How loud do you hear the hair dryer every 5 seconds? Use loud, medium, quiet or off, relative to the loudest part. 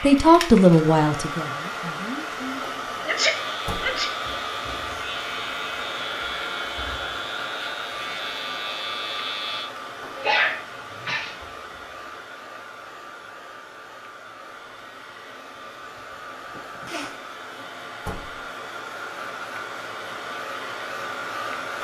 loud, loud, medium, medium, loud.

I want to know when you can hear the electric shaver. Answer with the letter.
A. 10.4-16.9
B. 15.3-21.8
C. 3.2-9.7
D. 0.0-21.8
C.